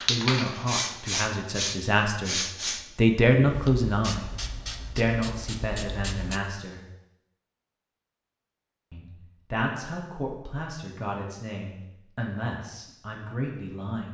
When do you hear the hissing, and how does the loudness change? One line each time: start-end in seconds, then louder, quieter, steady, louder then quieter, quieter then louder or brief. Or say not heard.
0.0-6.4 quieter.